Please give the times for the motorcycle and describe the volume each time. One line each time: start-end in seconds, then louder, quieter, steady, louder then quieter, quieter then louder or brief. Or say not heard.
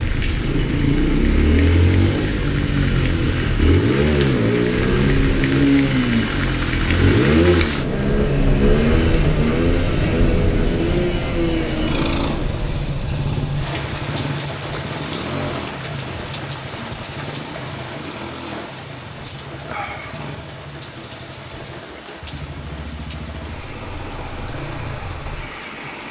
0.0-26.0 quieter.